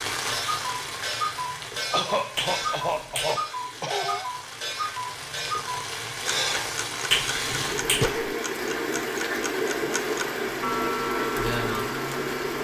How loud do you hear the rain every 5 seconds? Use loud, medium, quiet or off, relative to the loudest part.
medium, loud, loud.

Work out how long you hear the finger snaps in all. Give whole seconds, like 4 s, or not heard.
2 s.